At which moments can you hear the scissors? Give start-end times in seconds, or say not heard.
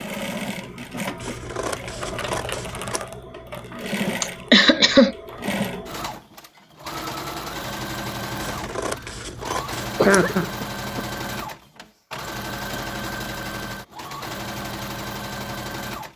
1.2-3.0, 8.4-10.3.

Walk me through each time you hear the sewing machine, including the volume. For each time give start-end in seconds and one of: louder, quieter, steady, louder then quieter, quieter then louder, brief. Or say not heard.
0.0-16.1 steady.